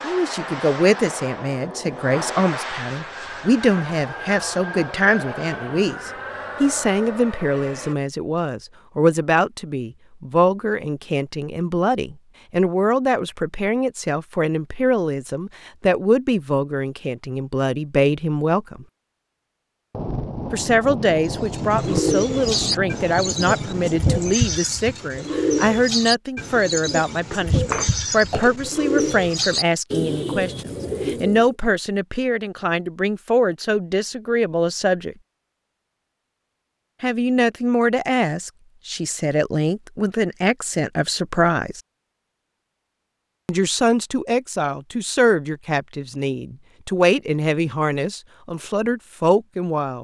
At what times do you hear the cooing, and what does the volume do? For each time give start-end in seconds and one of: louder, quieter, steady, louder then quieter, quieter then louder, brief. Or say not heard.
21.3-31.5 steady.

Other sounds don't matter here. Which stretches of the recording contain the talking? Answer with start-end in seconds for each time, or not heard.
0.0-18.9, 20.5-35.1, 37.0-41.8, 43.5-49.9.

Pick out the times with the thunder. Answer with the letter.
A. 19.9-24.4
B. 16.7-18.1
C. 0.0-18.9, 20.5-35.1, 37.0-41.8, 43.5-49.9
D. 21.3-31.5
A.